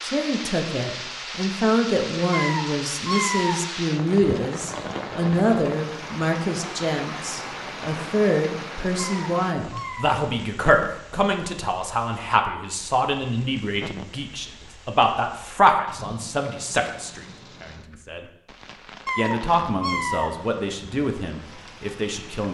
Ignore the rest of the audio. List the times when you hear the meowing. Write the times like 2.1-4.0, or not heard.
2.3-3.6, 8.9-10.1, 19.1-20.3.